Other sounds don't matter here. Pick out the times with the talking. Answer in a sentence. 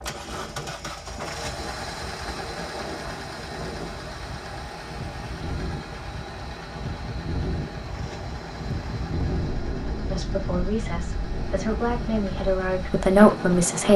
You can hear the talking from 10.1 to 13.9 s.